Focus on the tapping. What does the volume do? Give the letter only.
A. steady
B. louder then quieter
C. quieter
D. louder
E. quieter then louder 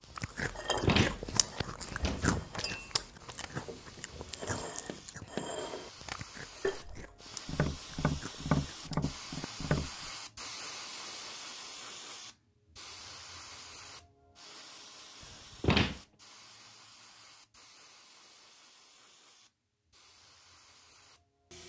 D.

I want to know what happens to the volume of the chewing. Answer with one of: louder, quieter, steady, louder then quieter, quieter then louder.
quieter.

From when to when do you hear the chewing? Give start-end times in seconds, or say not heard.
0.1-9.0.